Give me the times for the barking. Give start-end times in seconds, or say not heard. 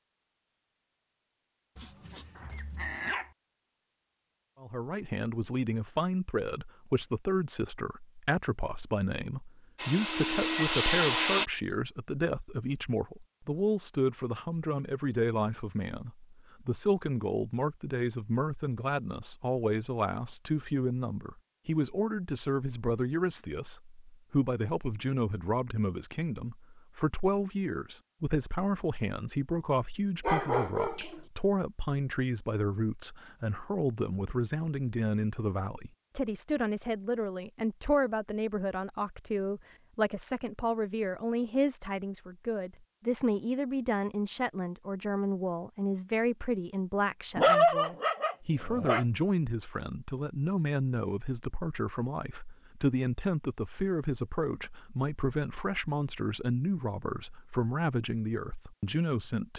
1.8-3.3, 30.2-31.2, 47.4-49.0.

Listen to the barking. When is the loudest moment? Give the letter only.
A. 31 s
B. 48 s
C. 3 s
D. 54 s
B.